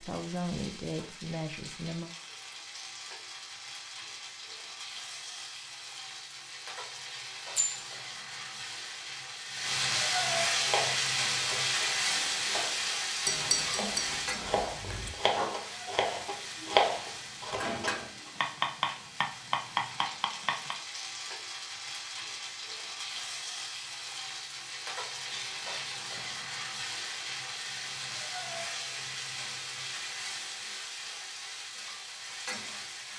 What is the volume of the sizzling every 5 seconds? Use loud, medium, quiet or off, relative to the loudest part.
quiet, medium, loud, medium, medium, medium, medium.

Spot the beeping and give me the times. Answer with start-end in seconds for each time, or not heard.
not heard.